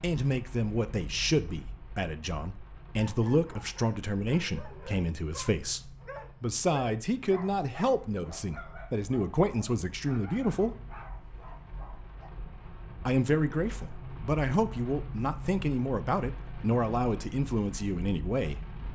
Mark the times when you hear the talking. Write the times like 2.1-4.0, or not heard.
0.0-10.8, 13.1-18.6.